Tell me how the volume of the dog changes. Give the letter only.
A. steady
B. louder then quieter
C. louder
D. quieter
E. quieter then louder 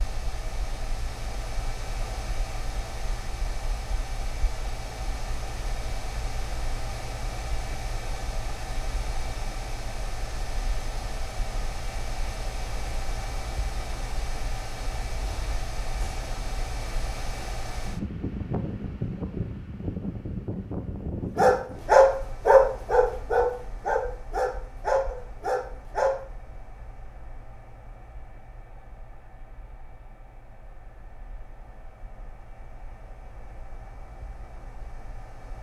D.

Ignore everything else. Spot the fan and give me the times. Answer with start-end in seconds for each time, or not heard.
0.0-35.5.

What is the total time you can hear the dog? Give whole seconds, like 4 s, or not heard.
5 s.